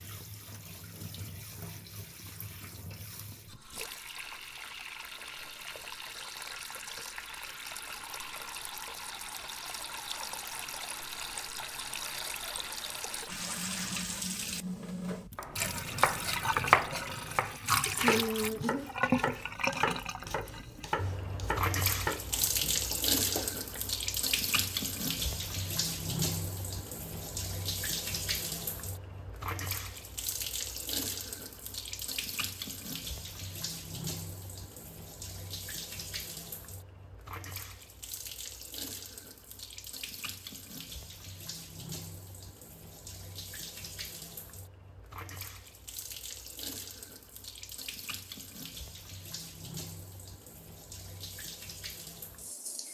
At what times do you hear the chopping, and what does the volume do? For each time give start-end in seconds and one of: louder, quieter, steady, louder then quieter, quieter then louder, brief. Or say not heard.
15.3-23.9 quieter.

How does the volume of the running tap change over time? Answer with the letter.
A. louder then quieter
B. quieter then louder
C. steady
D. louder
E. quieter
A.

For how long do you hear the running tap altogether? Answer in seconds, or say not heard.
53 s.